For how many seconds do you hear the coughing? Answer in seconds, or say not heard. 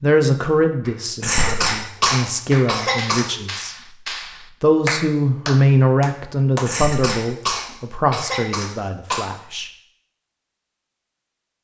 5 s.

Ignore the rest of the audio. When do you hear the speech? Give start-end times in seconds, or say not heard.
0.0-3.8, 4.6-9.7.